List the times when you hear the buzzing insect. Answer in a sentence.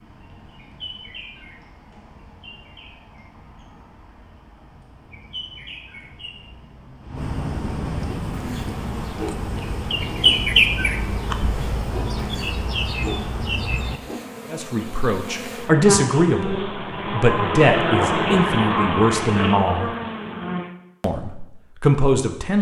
You can hear the buzzing insect from 8.2 to 20.7 s.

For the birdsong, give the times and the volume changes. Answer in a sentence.
The birdsong can be heard from 0.0 to 14.0 s, getting louder then quieter.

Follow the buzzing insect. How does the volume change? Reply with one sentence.
The loudness of the buzzing insect goes up.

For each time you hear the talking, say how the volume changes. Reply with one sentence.
You can hear the talking from 14.5 to 19.9 s, at a steady volume; and briefly from 21.0 to 22.5 s.